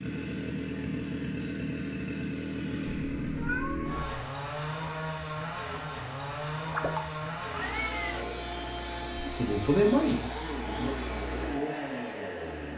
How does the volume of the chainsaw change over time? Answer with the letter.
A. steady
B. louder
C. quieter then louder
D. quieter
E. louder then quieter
A.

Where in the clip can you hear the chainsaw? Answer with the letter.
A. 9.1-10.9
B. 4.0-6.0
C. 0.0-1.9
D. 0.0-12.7
D.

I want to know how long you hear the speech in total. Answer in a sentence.
You can hear the speech for 2 seconds altogether.